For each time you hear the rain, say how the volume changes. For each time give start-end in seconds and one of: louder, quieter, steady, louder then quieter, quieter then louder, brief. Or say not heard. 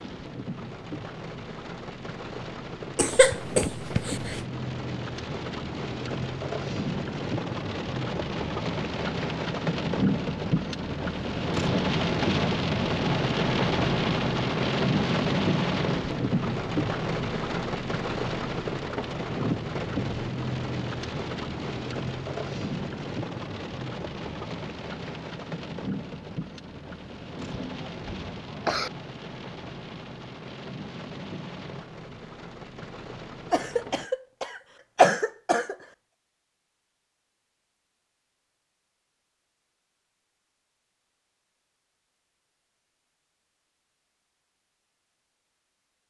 0.0-34.0 louder then quieter.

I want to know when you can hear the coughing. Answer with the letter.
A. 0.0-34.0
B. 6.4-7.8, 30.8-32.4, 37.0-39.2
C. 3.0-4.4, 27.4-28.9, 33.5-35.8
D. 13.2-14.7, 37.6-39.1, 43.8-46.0
C.